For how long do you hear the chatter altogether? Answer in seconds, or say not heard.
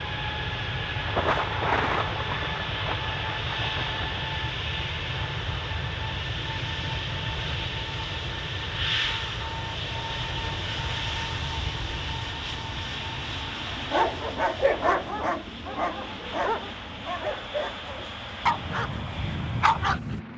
not heard.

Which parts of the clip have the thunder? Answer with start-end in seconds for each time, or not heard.
1.0-4.3.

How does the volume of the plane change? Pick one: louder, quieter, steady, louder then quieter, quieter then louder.
quieter.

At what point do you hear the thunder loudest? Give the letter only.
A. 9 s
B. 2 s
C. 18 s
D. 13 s
B.